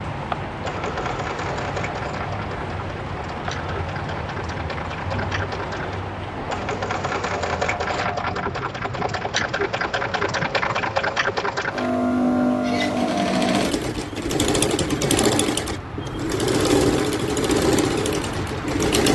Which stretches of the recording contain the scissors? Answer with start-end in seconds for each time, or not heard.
not heard.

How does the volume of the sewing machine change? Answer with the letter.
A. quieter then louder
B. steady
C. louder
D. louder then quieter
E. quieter
C.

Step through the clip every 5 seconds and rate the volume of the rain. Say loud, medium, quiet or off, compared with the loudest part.
loud, loud, medium, loud.